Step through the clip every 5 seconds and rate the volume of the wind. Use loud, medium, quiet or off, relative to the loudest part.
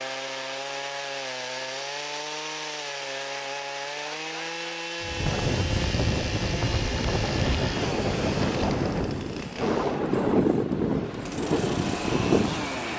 off, loud, loud.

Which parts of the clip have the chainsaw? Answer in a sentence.
The chainsaw can be heard from 0.0 to 12.9 s.